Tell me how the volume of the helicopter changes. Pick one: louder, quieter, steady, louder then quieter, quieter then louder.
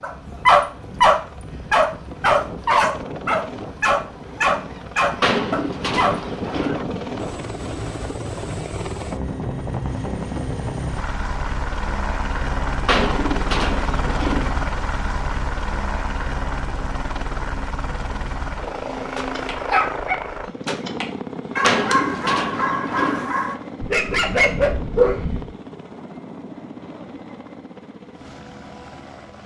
louder then quieter.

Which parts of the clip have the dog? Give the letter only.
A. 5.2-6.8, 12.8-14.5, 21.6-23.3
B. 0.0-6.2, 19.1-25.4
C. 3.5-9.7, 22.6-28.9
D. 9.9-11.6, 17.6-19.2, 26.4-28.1
B.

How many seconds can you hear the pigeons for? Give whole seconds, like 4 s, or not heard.
5 s.